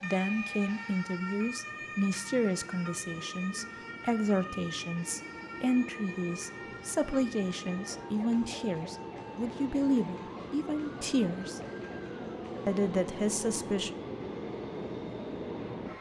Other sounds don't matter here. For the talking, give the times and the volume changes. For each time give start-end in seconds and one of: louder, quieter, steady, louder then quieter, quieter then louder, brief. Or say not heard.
0.0-11.6 steady
12.7-13.9 brief.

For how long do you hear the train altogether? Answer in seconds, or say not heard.
16 s.